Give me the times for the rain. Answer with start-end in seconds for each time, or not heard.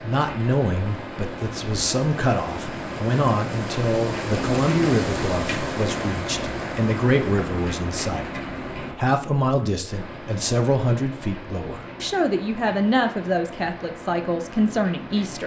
0.0-15.4.